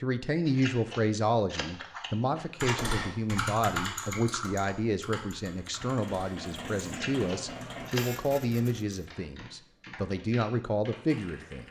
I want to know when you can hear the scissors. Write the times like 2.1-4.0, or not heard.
0.5-2.9, 6.8-8.2.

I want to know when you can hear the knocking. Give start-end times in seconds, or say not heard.
not heard.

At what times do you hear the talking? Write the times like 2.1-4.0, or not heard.
0.0-11.6.